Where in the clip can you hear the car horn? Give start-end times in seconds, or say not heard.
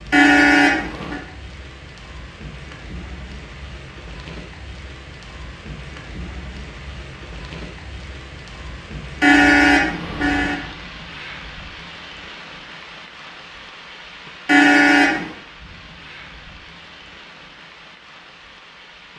0.1-1.2, 9.2-10.6, 14.4-15.3.